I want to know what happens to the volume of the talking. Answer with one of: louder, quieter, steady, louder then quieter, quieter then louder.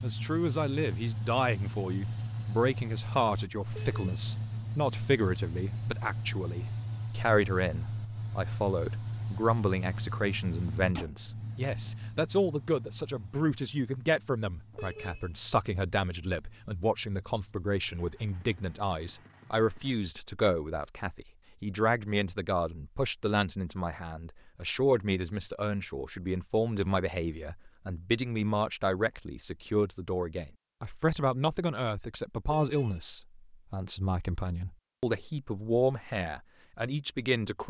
steady.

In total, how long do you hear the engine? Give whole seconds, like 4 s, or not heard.
20 s.